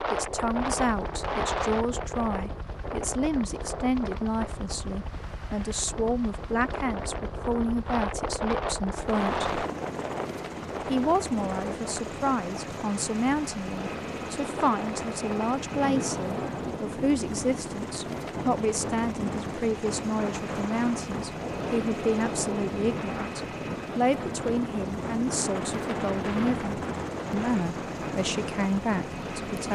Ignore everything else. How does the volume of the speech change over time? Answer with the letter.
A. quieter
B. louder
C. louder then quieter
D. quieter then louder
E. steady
E.